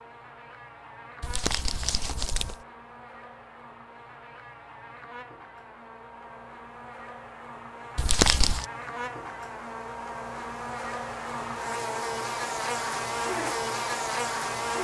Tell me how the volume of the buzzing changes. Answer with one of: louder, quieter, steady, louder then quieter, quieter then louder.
louder.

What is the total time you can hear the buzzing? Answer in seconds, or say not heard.
15 s.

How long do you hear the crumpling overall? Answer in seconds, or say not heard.
2 s.